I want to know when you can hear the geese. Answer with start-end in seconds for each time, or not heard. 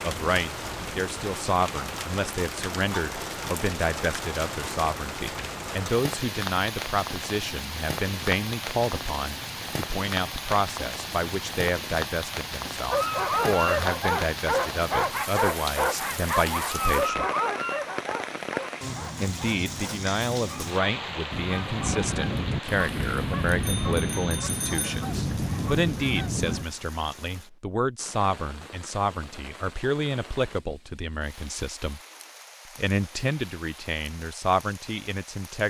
21.3-26.6.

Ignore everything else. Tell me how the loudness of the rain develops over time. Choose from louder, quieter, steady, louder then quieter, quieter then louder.
quieter.